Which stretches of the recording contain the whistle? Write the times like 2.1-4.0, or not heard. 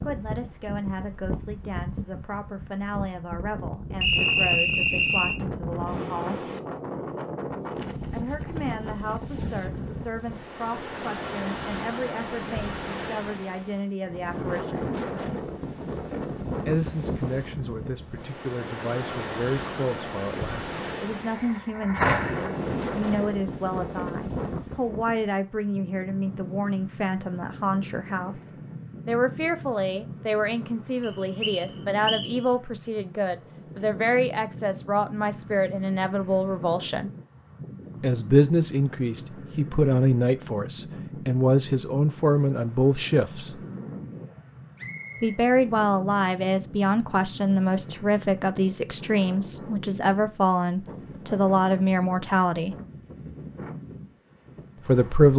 4.0-5.4, 31.0-32.3, 44.8-45.4.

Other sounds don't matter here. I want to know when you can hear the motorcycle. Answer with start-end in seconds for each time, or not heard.
21.2-23.4.